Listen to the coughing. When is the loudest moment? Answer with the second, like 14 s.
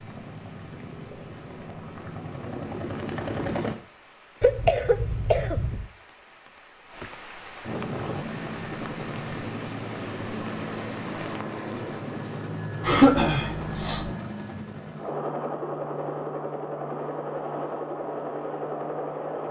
13 s.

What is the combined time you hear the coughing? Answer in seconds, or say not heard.
3 s.